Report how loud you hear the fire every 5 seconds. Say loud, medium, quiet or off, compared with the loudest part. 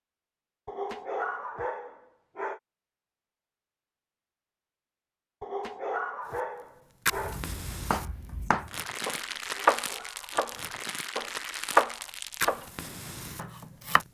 off, loud, loud.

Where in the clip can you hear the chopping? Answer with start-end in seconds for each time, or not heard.
7.2-10.6, 11.2-12.7, 13.3-14.0.